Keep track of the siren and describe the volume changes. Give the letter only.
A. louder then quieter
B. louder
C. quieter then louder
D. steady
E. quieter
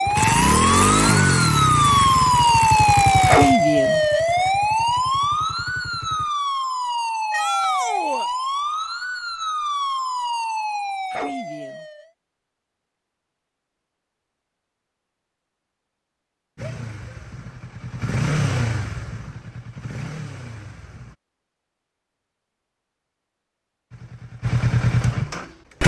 E.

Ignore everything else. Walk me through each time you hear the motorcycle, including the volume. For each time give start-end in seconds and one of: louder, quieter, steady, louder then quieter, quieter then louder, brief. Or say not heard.
0.1-6.3 quieter
16.6-21.1 louder then quieter
23.9-25.8 brief.